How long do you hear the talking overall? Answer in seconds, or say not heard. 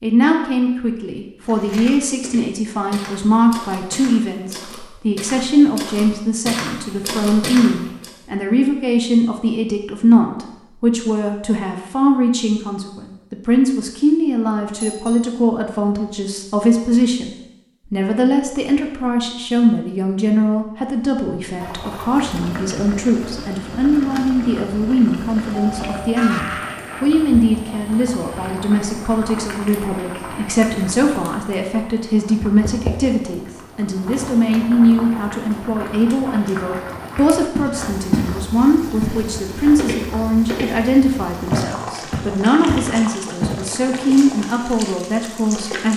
46 s.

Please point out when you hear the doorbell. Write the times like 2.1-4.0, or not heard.
14.8-15.3, 25.8-27.1.